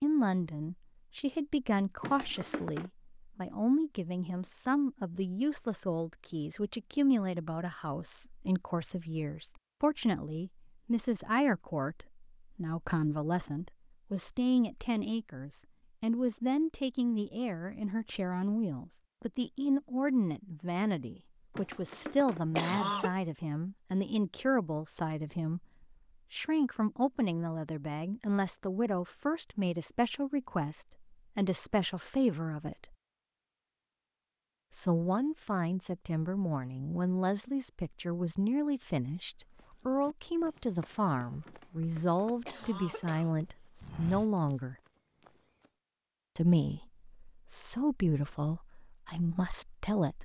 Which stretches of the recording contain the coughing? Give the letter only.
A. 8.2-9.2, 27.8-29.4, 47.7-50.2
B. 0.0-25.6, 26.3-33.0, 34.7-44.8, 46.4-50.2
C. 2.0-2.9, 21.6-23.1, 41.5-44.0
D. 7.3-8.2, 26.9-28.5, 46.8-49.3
C.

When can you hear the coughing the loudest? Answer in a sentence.
The loudest moment of the coughing is at 23 seconds.